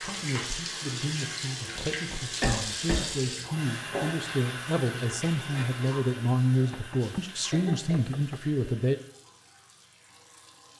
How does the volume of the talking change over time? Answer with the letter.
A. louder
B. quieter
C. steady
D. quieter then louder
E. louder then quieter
A.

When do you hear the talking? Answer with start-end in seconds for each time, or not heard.
0.0-8.9.